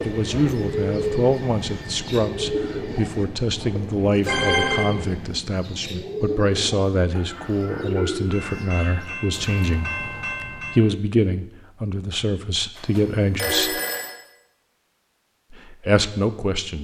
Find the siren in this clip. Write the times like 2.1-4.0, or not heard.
not heard.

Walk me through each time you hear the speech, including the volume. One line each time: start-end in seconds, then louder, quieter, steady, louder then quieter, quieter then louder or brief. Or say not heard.
0.0-13.8 steady
15.5-16.7 brief.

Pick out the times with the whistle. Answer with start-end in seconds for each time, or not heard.
not heard.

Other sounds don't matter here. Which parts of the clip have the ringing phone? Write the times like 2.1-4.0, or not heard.
4.2-4.8, 12.8-14.2.